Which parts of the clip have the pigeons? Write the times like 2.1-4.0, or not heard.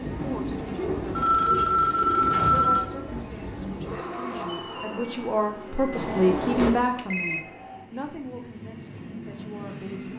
0.0-2.5.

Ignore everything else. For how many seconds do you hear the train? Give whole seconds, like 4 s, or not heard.
10 s.